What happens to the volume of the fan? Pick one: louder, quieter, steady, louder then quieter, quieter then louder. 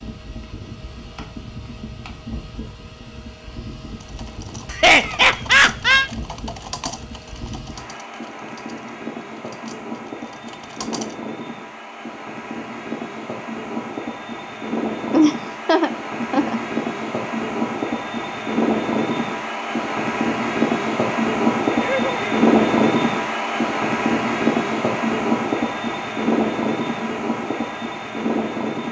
louder.